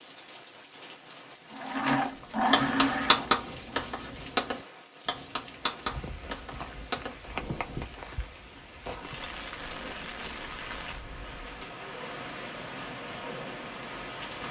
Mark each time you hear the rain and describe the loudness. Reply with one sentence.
The rain can be heard from 0.0 to 14.4 s, getting louder.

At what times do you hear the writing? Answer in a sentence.
The writing can be heard from 2.5 to 7.8 s.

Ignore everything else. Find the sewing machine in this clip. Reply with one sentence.
The sewing machine can be heard from 1.4 to 3.9 s.